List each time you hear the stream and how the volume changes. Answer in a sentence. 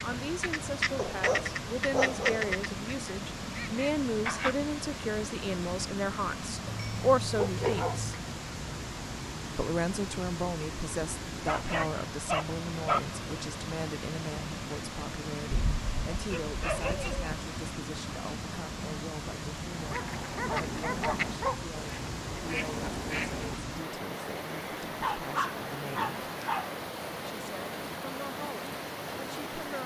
The stream can be heard from 0.0 to 29.8 s, at a steady volume.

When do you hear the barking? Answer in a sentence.
The barking can be heard from 0.9 to 2.5 s, from 6.7 to 8.2 s, from 11.4 to 13.0 s, from 15.5 to 17.4 s, from 19.9 to 21.7 s and from 24.9 to 26.7 s.